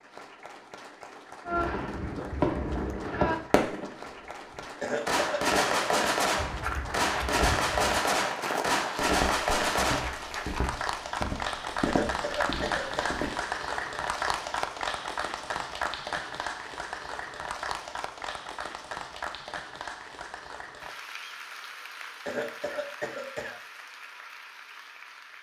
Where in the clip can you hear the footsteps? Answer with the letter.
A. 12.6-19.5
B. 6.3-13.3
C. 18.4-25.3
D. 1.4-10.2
B.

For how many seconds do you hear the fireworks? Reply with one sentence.
The fireworks can be heard for 9 seconds in total.